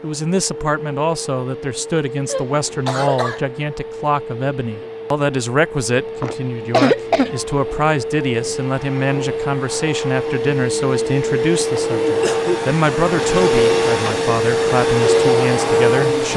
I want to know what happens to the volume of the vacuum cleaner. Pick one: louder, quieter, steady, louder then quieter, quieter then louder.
louder.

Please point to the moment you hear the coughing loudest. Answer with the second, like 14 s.
7 s.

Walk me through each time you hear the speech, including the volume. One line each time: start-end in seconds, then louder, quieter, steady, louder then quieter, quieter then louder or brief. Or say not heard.
0.0-16.3 steady.